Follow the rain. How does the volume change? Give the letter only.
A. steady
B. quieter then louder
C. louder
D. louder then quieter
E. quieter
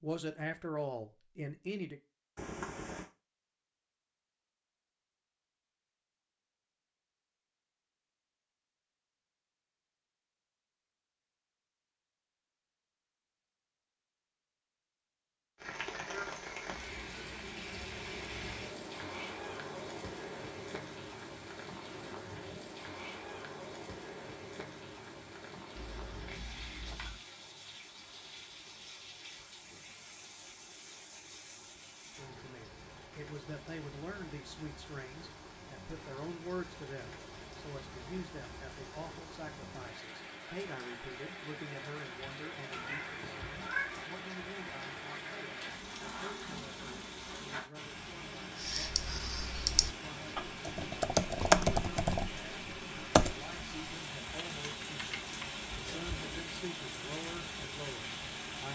B.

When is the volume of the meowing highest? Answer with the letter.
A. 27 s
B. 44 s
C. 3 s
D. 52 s
B.